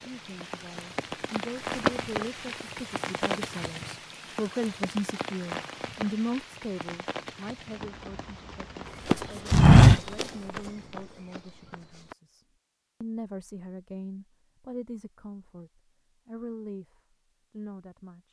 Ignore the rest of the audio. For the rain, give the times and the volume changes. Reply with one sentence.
You can hear the rain from 0.0 to 10.2 s, getting quieter.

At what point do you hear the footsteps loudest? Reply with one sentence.
The volume of the footsteps peaks at 10 seconds.